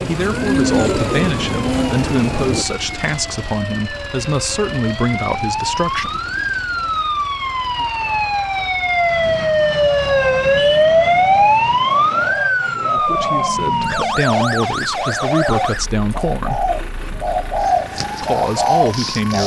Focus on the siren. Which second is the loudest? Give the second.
11 s.